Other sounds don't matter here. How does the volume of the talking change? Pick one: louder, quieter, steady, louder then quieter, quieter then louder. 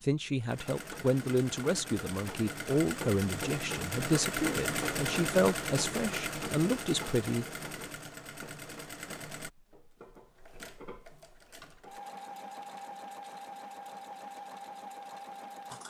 steady.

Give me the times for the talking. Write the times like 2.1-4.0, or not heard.
0.0-7.5.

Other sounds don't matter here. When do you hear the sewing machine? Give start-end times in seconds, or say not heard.
0.0-15.8.